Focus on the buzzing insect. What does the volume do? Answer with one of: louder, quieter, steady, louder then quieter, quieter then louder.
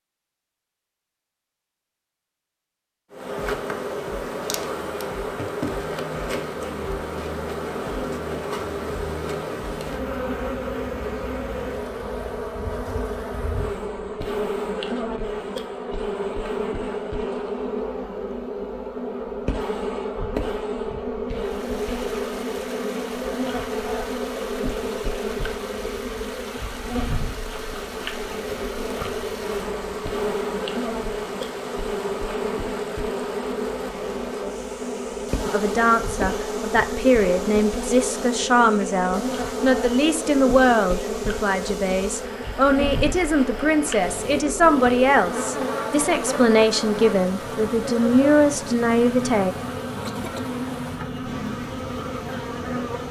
steady.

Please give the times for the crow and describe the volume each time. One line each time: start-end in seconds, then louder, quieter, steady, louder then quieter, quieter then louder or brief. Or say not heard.
not heard.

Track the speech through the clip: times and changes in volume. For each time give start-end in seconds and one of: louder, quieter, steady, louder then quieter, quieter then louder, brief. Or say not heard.
35.5-49.5 steady.